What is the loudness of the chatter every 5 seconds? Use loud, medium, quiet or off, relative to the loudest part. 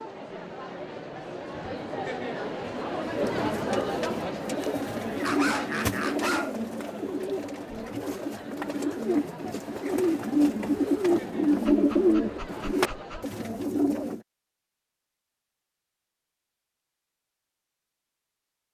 loud, medium, medium, off.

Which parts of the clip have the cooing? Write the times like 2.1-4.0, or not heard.
3.1-14.2.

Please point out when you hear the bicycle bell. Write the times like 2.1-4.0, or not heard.
not heard.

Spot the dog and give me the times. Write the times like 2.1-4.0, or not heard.
5.2-6.5, 11.6-13.3.